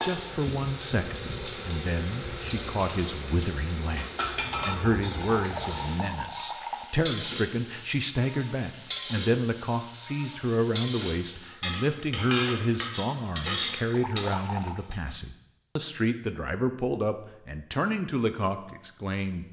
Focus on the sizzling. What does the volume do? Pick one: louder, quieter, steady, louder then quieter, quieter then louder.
steady.